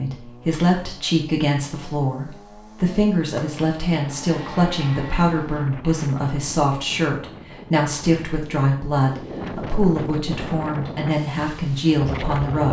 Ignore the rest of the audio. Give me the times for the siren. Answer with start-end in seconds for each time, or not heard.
not heard.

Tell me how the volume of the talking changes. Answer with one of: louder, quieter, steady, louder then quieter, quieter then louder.
steady.